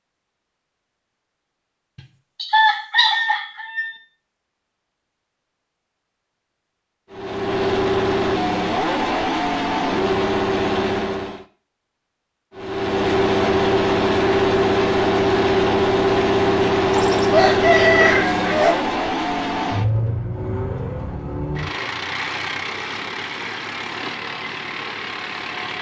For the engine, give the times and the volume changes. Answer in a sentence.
You can hear the engine from 7.1 to 11.4 s, at a steady volume; and from 12.6 to 25.7 s, getting quieter.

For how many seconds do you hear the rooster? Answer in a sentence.
The rooster can be heard for 4 seconds in total.